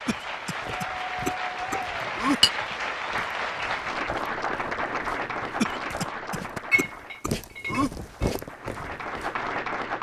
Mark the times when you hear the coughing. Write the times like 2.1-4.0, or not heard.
0.1-2.4, 5.6-7.9.